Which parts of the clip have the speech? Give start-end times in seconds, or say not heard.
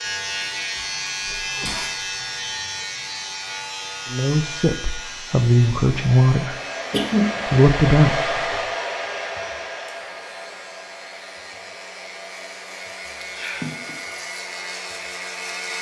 4.1-6.5, 7.5-8.4.